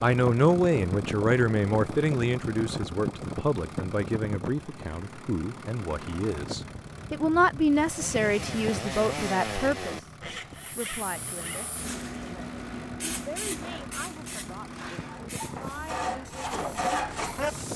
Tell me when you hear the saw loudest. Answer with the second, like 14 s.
17 s.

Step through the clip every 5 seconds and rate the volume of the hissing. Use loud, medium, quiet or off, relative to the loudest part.
off, off, loud, medium.